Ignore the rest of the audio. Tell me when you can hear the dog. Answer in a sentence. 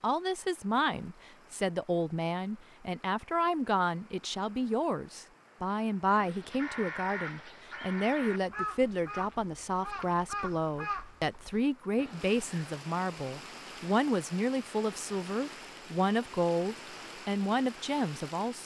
The dog can't be heard in this clip.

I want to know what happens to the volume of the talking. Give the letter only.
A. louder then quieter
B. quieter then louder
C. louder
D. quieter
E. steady
E.